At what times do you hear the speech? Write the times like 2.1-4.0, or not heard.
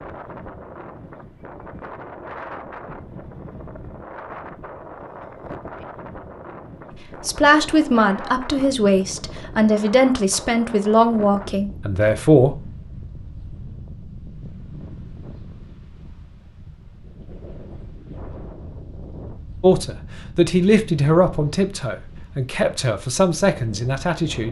7.2-12.7, 19.6-24.4.